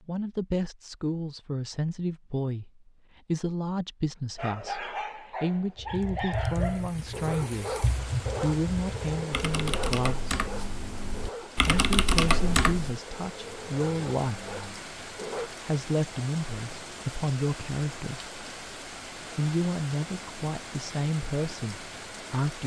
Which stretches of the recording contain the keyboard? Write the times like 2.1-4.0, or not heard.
5.8-13.0.